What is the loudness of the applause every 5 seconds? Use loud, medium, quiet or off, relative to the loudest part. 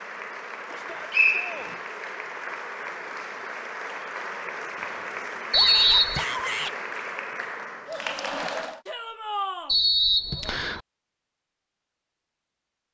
loud, loud, off.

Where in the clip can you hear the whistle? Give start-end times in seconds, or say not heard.
0.7-1.8, 5.5-6.2, 9.7-10.8.